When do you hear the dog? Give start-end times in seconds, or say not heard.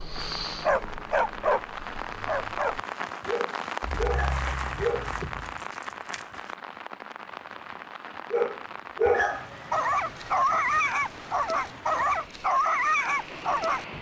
0.0-5.1, 8.3-13.8.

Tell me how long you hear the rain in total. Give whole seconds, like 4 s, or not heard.
14 s.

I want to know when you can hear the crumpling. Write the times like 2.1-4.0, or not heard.
4.1-6.5.